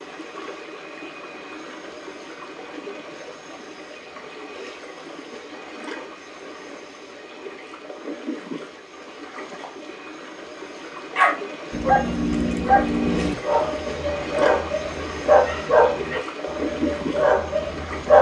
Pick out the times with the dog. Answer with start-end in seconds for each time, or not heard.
11.2-18.1.